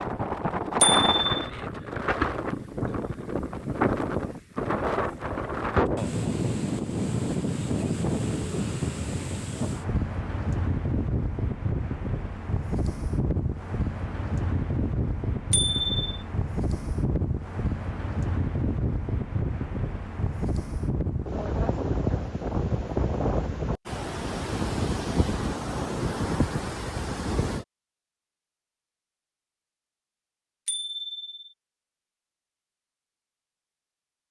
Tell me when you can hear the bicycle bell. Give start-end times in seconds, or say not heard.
0.8-1.4, 15.5-16.2, 30.6-31.4.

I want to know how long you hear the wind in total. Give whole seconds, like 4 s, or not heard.
28 s.